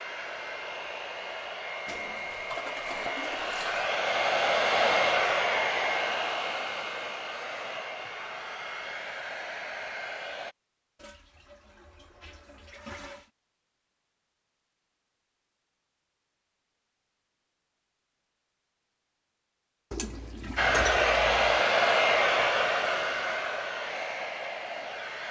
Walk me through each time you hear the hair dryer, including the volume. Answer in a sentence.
You can hear the hair dryer from 0.0 to 10.6 s, getting louder then quieter; and from 20.6 to 25.2 s, getting quieter.